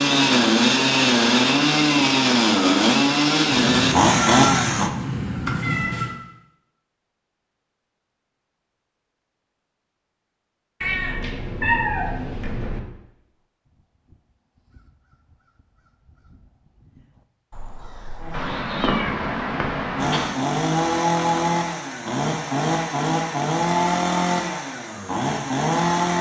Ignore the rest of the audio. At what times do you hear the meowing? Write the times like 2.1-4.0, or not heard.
3.5-6.2, 10.8-12.8, 18.3-20.4.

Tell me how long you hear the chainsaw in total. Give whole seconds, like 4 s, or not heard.
13 s.